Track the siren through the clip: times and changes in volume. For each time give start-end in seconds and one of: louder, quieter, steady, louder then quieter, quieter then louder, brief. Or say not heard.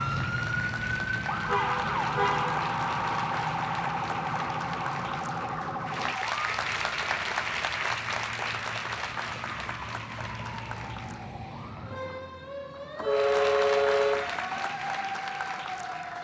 0.0-16.1 quieter then louder.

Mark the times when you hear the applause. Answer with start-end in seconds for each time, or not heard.
0.0-11.3, 13.1-16.1.